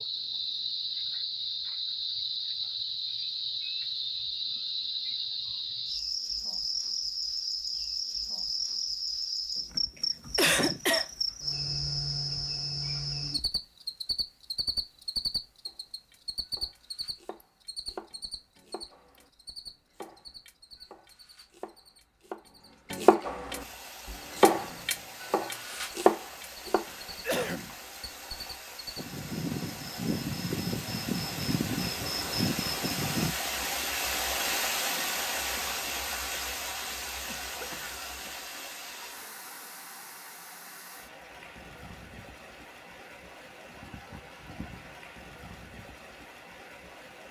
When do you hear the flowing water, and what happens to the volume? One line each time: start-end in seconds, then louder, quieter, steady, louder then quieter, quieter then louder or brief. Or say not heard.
23.6-47.2 louder then quieter.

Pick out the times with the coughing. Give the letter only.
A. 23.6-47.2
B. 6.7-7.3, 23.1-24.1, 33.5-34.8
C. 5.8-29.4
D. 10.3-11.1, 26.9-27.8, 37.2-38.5
D.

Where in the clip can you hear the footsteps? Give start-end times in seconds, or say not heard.
not heard.